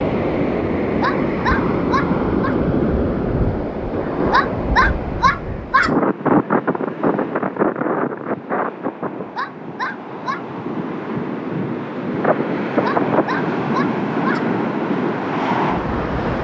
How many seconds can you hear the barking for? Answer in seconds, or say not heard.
6 s.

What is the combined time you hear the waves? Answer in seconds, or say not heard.
16 s.